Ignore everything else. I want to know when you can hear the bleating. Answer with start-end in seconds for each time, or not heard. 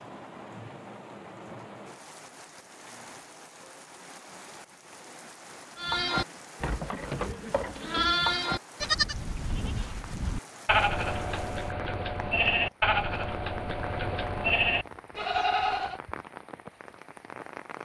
5.8-16.0.